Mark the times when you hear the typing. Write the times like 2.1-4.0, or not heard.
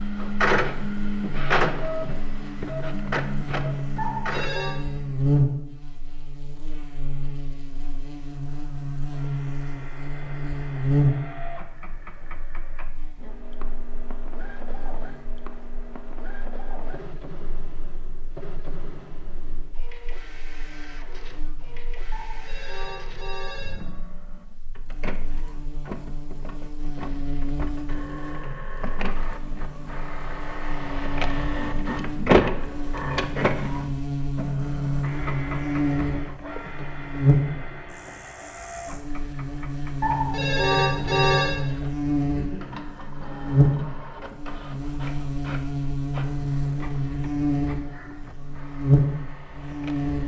not heard.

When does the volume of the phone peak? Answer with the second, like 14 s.
41 s.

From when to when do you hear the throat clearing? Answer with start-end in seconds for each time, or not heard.
42.3-43.0.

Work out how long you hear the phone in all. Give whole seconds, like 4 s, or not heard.
4 s.